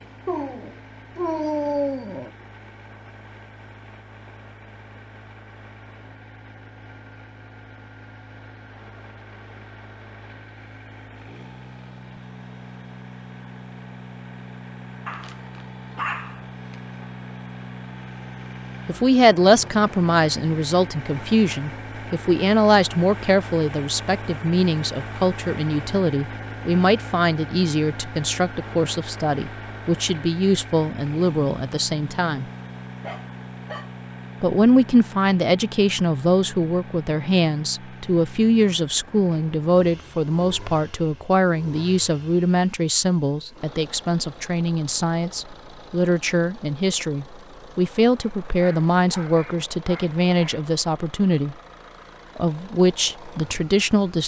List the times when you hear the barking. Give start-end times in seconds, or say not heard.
0.2-2.3, 15.1-17.1, 33.0-33.9, 48.2-50.6.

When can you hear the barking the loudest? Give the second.
2 s.